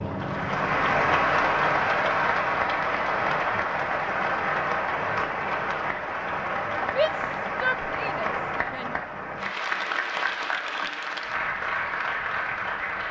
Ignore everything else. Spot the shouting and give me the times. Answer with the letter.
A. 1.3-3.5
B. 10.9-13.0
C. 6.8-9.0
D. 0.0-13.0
C.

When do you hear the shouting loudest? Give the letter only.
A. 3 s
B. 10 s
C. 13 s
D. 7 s
D.